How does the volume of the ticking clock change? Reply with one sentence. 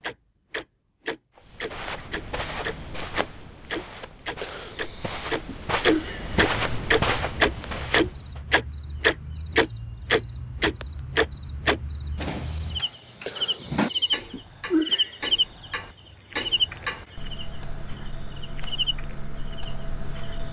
The loudness of the ticking clock goes up, then down.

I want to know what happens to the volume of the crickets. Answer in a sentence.
The loudness of the crickets goes up, then down.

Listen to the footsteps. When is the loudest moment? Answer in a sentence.
The loudest moment of the footsteps is at 7 seconds.